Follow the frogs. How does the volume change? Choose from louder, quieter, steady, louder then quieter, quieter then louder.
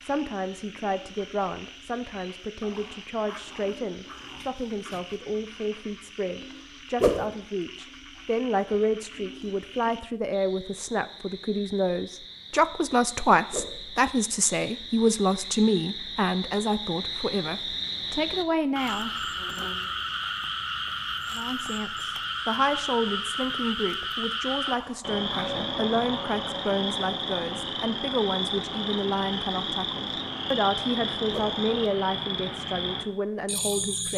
louder.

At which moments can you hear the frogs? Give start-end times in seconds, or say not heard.
0.0-34.1.